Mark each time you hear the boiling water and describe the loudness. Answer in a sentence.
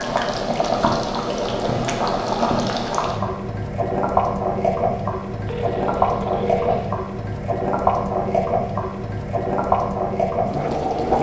The boiling water can be heard from 0.0 to 11.1 s, at a steady volume.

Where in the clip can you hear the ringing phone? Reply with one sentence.
You can hear the ringing phone from 5.5 to 7.0 s.